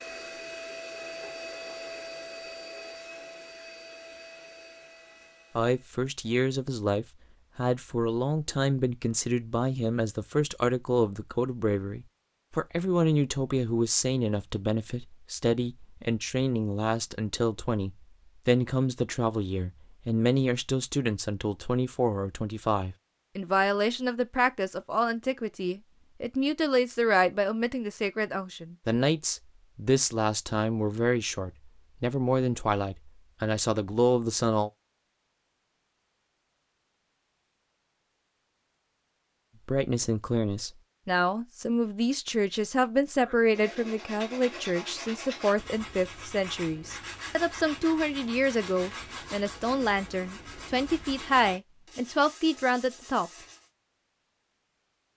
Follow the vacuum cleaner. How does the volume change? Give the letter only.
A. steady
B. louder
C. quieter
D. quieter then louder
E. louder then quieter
C.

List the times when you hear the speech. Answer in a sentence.
The speech can be heard from 5.5 to 34.7 s and from 39.6 to 53.3 s.